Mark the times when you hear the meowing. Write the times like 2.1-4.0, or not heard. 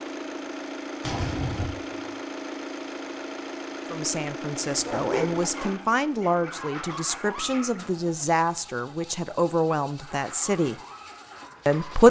1.0-2.0.